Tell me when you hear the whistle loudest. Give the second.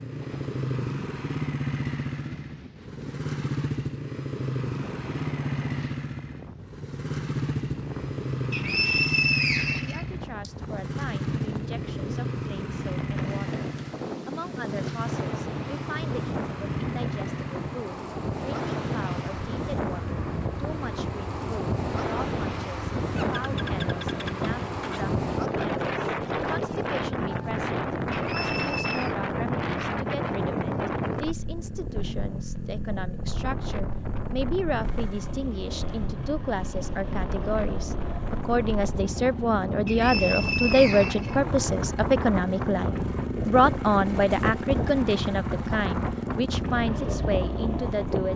9 s.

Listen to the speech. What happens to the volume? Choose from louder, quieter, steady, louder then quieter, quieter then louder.
louder.